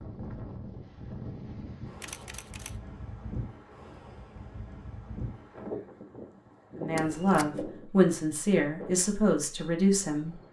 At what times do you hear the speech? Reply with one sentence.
You can hear the speech from 6.8 to 10.3 s.